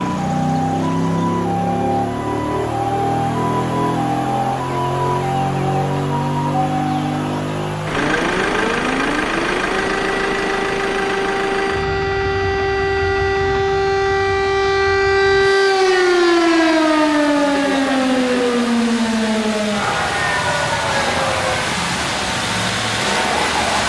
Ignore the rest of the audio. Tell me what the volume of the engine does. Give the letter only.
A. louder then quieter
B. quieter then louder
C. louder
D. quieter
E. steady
B.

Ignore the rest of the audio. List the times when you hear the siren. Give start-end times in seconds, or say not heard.
0.0-23.8.